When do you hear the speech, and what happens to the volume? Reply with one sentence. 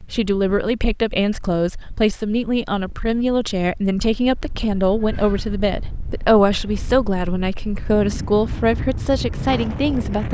You can hear the speech from 0.0 to 10.2 s, at a steady volume.